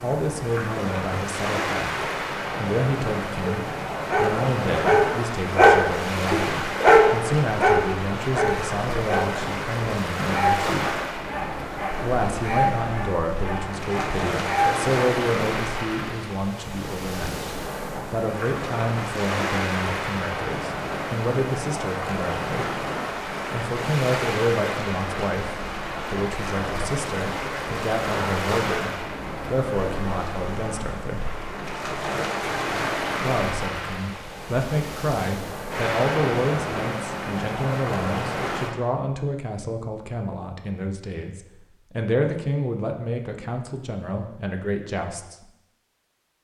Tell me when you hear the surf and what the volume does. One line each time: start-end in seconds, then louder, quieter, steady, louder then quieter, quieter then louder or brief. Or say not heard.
0.0-38.8 steady.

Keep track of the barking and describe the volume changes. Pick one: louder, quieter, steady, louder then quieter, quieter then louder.
quieter.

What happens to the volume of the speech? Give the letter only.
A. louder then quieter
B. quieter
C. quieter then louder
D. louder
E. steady
E.